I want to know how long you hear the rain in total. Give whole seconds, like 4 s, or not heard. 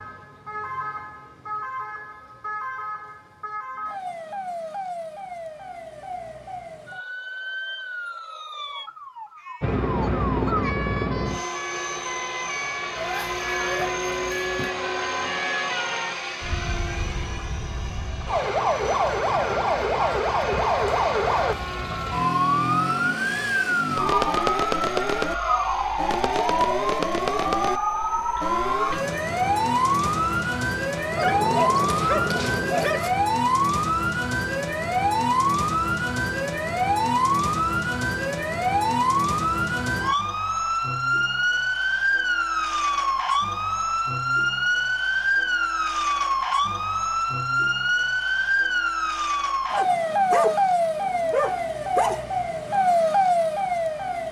not heard.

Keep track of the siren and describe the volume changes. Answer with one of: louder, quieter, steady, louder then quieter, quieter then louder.
louder.